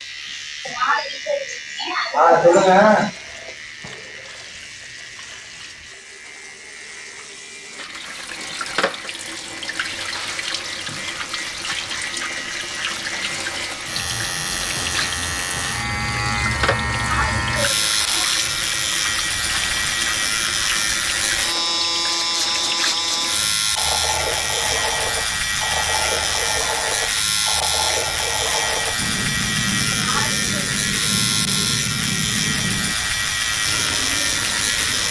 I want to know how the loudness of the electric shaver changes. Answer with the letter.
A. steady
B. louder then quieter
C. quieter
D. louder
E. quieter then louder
D.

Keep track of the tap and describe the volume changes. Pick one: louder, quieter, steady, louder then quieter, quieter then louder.
louder.